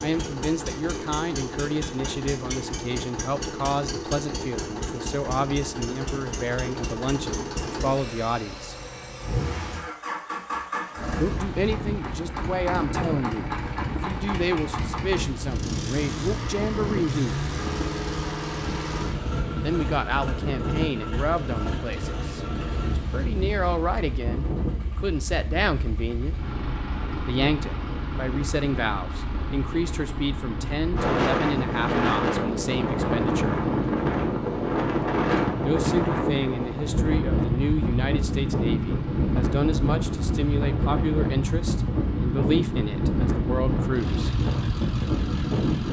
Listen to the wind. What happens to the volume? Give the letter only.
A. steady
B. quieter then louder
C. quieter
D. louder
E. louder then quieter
D.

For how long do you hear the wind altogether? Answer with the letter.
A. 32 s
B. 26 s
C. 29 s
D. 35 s
D.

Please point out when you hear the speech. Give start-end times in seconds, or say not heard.
0.0-8.8, 11.2-17.4, 19.6-26.4, 27.2-33.5, 35.6-44.4.